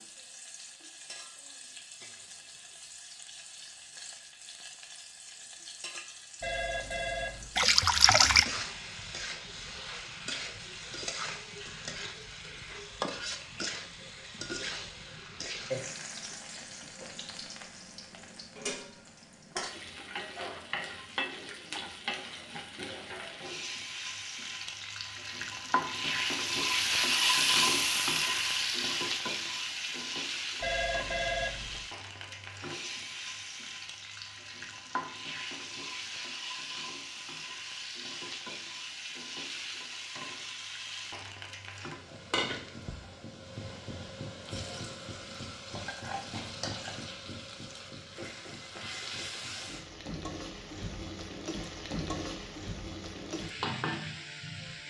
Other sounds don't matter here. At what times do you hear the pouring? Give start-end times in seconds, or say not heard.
7.5-8.4.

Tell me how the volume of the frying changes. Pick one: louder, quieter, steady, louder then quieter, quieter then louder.
louder then quieter.